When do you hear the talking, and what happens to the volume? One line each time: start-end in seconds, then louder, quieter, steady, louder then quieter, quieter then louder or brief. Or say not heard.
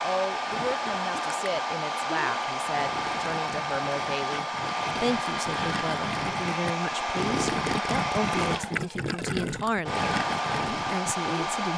0.0-11.7 steady.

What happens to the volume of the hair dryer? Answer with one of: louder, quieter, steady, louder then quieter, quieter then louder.
steady.